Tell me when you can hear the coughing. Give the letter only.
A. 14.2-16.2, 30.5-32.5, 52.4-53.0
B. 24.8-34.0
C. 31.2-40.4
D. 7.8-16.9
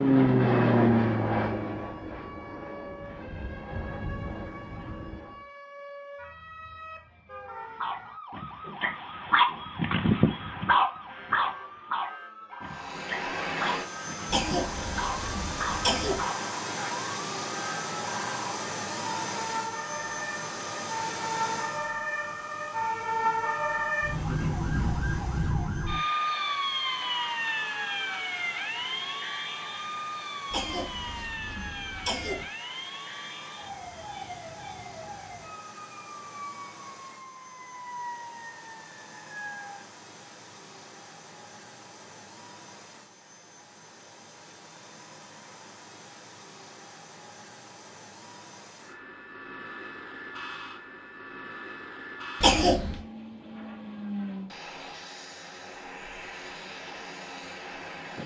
A.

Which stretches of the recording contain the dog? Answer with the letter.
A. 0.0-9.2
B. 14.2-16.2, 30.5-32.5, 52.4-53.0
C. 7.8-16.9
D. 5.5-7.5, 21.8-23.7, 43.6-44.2
C.